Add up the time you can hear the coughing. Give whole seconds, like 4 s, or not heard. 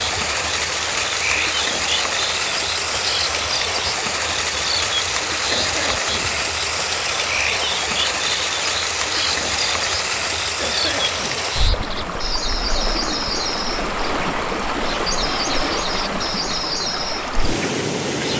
2 s.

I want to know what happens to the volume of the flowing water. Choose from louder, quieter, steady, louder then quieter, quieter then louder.
steady.